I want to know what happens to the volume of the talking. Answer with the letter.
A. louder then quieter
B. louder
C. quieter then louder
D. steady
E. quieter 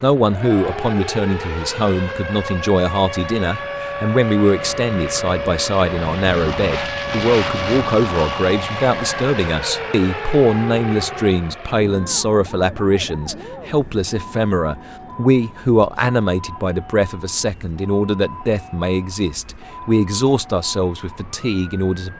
D.